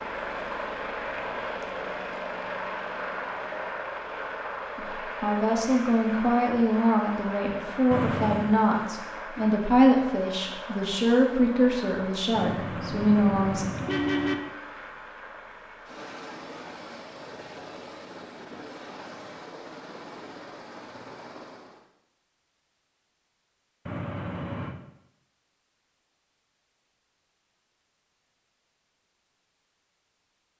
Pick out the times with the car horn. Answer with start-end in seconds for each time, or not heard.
7.9-8.5, 12.3-14.3, 23.9-24.8.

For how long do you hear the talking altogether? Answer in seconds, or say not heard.
9 s.